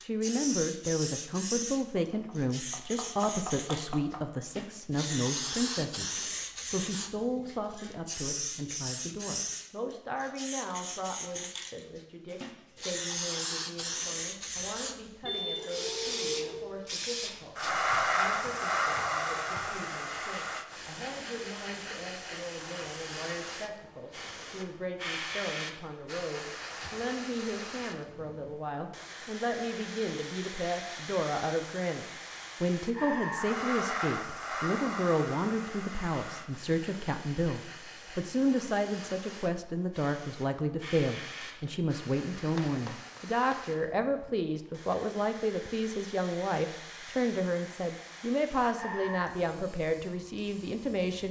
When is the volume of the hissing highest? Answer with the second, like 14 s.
18 s.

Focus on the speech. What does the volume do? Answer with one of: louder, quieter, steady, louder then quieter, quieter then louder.
quieter then louder.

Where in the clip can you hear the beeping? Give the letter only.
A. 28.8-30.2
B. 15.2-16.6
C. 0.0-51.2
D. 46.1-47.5
B.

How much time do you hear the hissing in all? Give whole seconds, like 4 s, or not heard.
51 s.